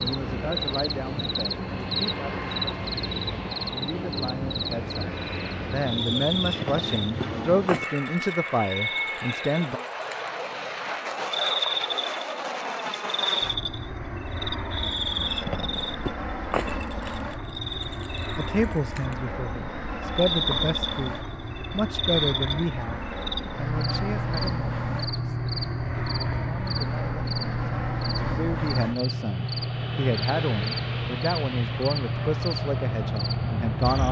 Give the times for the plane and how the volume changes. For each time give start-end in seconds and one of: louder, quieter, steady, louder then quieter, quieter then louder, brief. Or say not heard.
0.0-34.0 steady.